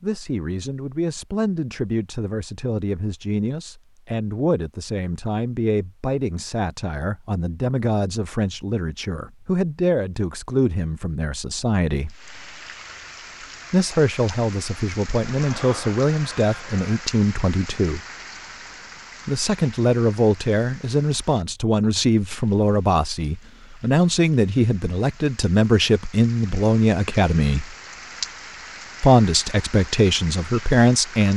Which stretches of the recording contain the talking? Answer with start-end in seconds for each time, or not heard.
0.0-12.2, 13.7-18.0, 19.2-27.8, 29.0-31.3.